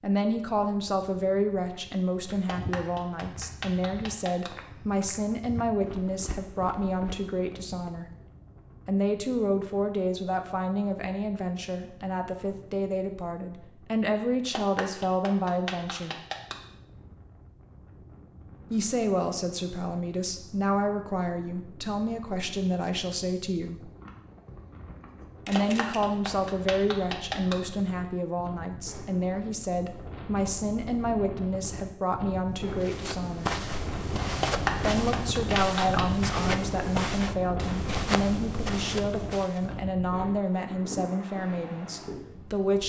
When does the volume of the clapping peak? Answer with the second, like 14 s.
35 s.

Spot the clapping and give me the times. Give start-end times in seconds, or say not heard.
2.5-4.5, 14.5-16.6, 25.6-27.6, 34.4-36.0.